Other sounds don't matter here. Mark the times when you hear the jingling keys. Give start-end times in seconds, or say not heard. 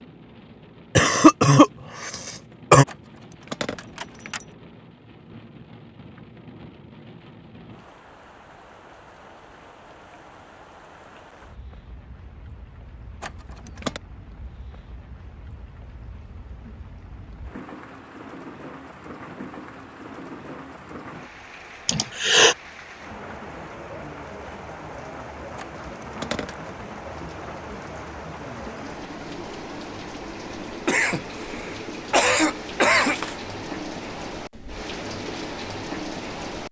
2.9-4.5, 13.2-14.0, 25.6-26.6.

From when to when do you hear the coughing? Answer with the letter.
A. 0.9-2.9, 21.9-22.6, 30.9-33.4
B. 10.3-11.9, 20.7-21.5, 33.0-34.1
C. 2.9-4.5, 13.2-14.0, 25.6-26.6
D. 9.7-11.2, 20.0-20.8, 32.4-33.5
A.